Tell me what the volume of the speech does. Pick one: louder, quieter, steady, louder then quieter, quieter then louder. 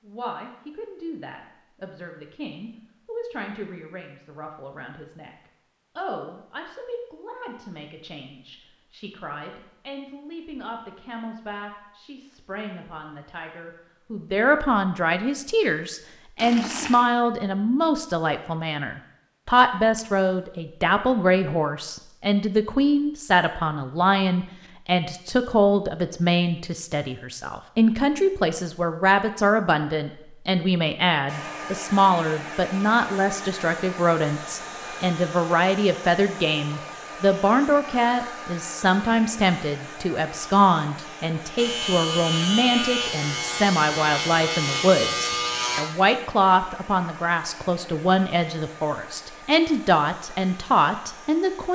louder.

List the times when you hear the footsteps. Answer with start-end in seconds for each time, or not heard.
not heard.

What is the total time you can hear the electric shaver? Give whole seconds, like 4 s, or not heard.
4 s.